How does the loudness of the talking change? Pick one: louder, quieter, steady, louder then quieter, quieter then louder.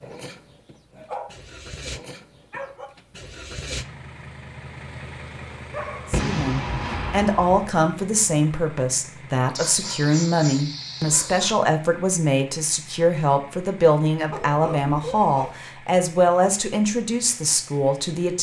steady.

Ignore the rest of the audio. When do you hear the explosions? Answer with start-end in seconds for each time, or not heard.
6.1-7.7.